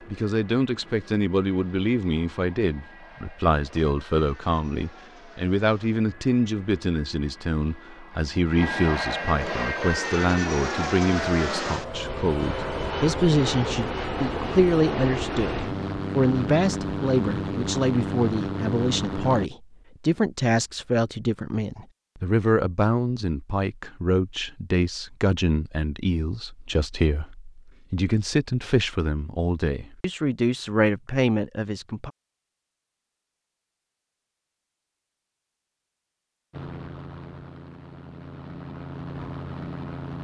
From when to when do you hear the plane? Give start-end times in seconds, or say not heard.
0.0-19.5, 36.5-40.1.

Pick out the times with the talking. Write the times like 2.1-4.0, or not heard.
0.1-32.1.